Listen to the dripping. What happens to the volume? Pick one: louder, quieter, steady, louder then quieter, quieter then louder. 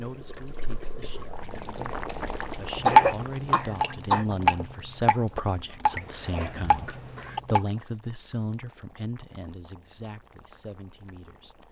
louder then quieter.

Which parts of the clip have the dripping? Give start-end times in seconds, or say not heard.
0.0-7.6.